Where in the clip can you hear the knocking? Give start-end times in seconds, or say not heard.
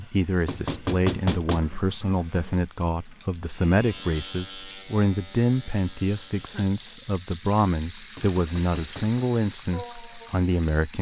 0.5-1.8, 8.2-9.2.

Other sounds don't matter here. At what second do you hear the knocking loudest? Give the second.
1 s.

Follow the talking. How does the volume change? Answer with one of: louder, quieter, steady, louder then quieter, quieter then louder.
steady.